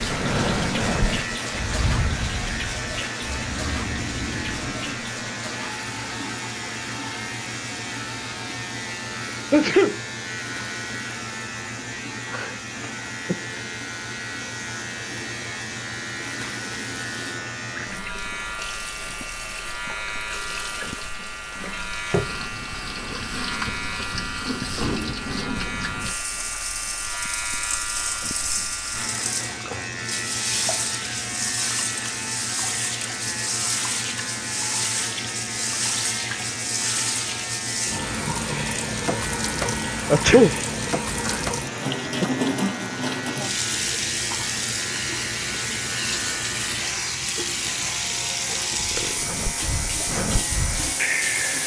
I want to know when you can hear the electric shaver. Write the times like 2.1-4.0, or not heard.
0.0-51.6.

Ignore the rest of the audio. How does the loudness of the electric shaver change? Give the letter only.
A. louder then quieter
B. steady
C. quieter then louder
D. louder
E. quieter
B.